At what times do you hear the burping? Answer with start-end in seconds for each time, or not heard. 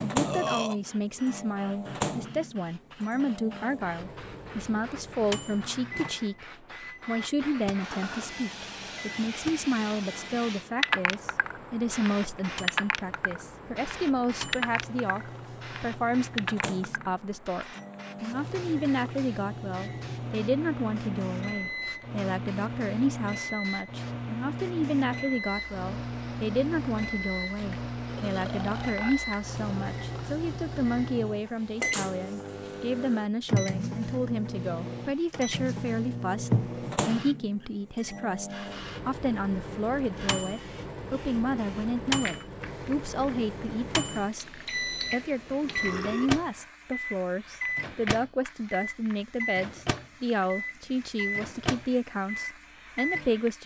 0.2-0.8, 27.5-29.4, 45.6-46.4.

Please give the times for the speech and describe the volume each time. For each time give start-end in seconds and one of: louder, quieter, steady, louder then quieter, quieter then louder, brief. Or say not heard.
0.0-6.5 steady
7.0-53.6 steady.